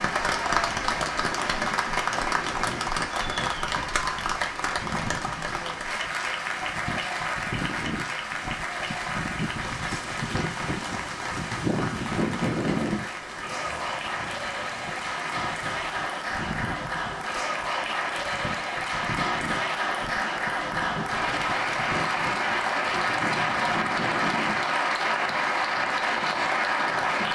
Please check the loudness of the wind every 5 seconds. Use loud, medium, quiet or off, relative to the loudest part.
medium, medium, loud, medium, medium, quiet.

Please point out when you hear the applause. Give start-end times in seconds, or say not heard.
0.0-27.3.